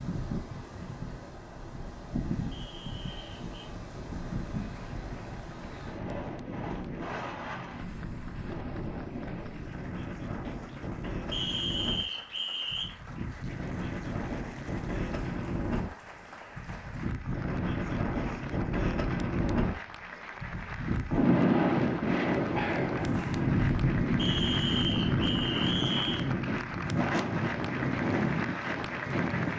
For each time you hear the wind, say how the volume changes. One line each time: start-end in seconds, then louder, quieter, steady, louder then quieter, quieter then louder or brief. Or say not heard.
0.0-29.5 louder.